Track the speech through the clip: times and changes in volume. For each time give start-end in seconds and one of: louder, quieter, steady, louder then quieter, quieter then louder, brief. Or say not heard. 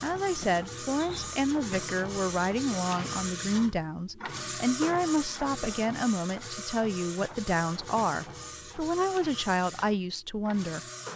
0.0-10.8 steady.